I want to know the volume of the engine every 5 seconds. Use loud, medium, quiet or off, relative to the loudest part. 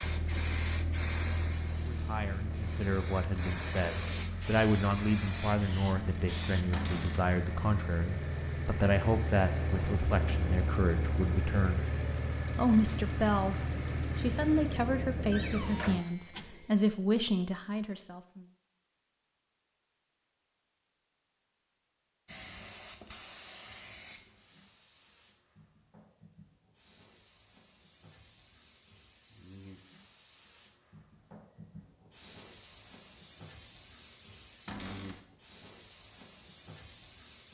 medium, loud, loud, loud, off, off, off, off.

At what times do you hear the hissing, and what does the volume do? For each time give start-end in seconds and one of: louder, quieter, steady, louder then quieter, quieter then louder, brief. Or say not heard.
0.0-6.7 quieter then louder
22.2-37.4 quieter then louder.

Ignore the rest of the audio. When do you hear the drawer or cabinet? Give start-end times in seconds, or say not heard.
6.7-7.2, 15.3-16.1, 34.6-35.2.